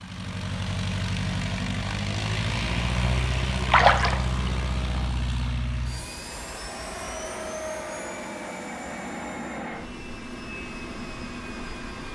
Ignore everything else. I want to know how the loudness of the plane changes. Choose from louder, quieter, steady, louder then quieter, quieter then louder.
quieter.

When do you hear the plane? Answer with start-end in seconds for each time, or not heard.
0.0-12.1.